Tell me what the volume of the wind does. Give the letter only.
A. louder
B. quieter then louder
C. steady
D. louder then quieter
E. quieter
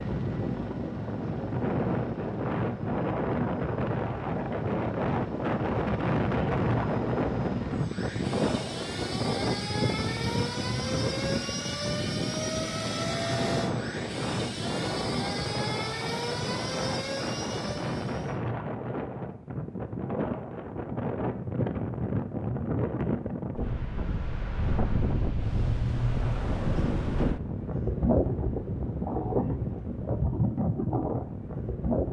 C.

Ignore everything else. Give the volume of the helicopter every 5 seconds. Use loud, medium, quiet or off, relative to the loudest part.
medium, loud, loud, loud, off, off, off.